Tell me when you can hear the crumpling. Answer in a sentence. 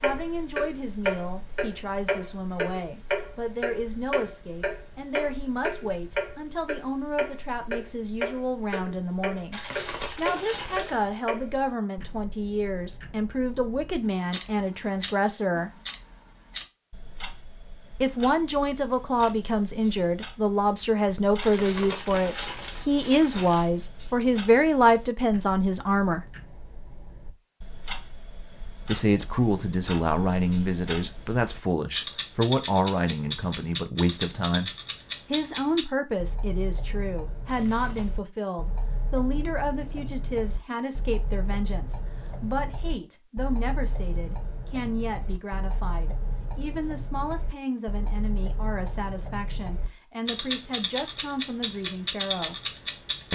The crumpling can be heard from 9.5 to 11.2 s, from 21.4 to 23.7 s and from 37.5 to 38.1 s.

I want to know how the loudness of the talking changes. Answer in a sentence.
The volume of the talking goes up, then down.